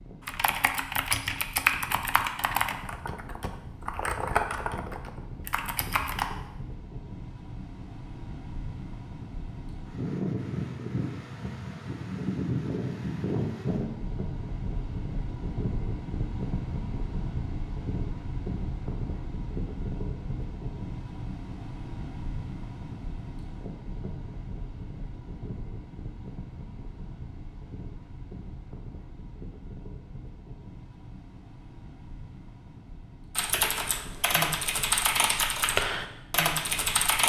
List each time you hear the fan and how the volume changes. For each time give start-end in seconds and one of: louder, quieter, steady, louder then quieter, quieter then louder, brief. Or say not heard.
0.0-37.2 louder then quieter.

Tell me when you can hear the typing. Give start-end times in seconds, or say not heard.
0.2-6.2, 33.4-37.2.